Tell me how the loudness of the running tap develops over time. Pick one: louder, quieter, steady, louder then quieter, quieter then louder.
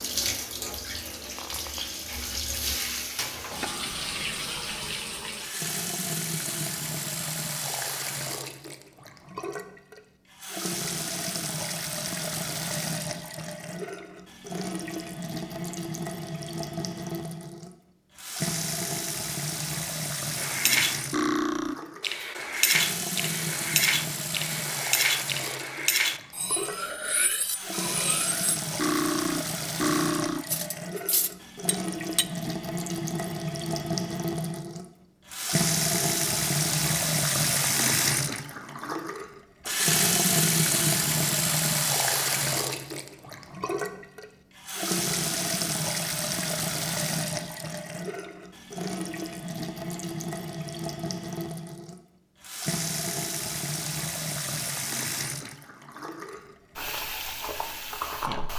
louder then quieter.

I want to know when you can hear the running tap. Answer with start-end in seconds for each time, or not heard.
0.0-58.5.